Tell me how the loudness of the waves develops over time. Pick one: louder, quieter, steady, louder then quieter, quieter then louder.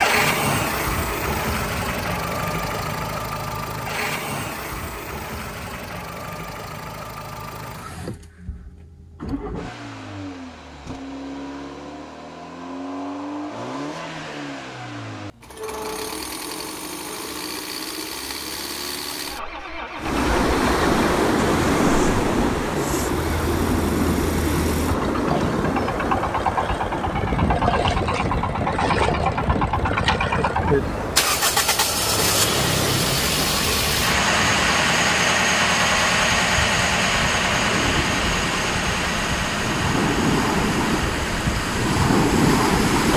quieter then louder.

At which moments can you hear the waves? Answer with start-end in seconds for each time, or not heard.
19.9-43.1.